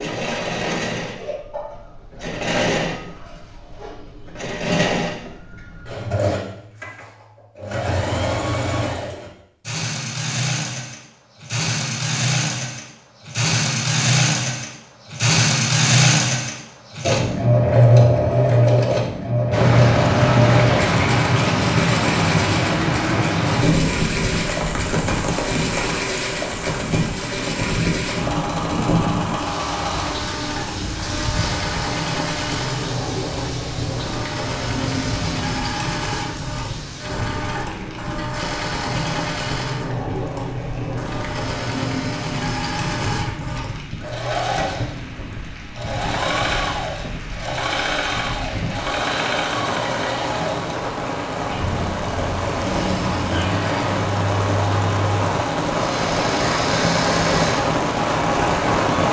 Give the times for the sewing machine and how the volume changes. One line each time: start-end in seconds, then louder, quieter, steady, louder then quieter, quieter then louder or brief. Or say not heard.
0.0-58.8 louder then quieter.